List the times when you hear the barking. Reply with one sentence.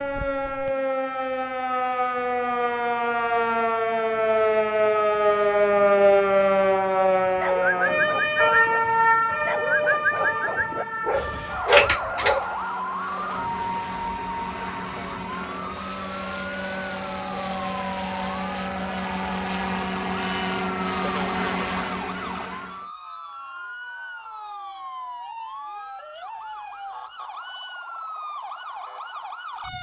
You can hear the barking from 7.2 to 12.5 s.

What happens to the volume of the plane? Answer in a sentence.
The loudness of the plane goes up.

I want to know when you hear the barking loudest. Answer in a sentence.
The volume of the barking peaks at 12 seconds.